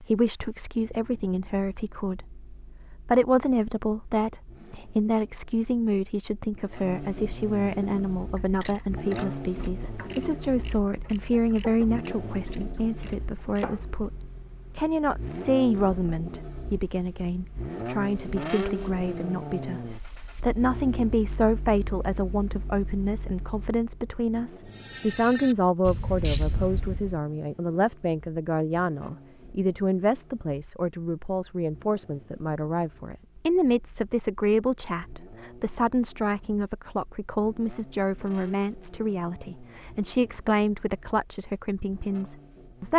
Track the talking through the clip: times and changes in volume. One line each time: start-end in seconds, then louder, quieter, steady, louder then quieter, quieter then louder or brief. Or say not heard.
0.0-42.9 steady.